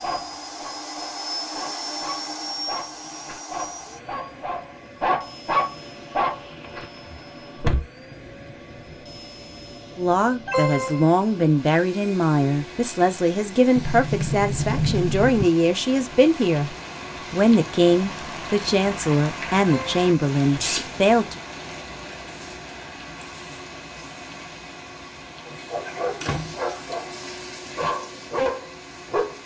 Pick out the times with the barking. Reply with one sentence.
You can hear the barking from 0.0 to 6.8 s and from 25.4 to 29.4 s.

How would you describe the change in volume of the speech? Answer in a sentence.
The volume of the speech stays about the same.